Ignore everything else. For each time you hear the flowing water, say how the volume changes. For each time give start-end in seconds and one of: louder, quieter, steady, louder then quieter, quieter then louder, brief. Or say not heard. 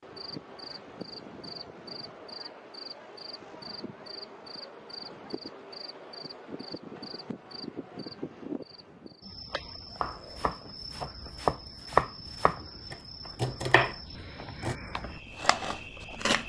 not heard.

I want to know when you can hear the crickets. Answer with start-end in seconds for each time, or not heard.
0.0-16.4.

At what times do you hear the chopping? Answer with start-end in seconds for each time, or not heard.
10.0-16.4.